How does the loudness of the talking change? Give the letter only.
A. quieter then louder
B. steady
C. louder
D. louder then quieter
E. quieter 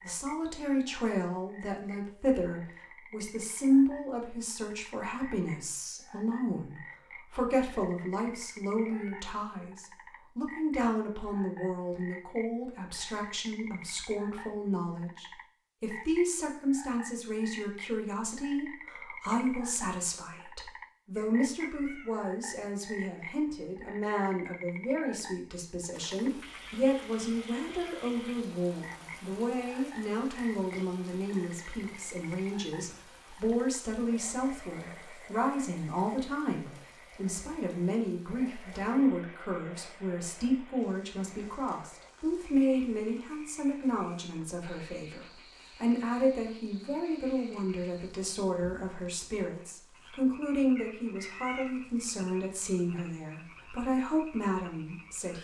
B.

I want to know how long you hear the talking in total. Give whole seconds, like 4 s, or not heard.
55 s.